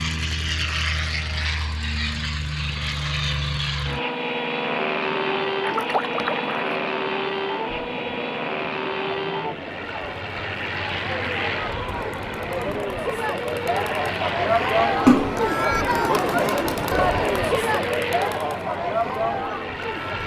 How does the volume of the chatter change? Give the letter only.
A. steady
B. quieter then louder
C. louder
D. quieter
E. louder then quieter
C.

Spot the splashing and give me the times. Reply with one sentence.
You can hear the splashing from 5.6 to 6.7 s and from 15.1 to 15.6 s.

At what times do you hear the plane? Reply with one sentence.
The plane can be heard from 0.0 to 20.2 s.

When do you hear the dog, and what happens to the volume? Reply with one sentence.
The dog can't be heard in this clip.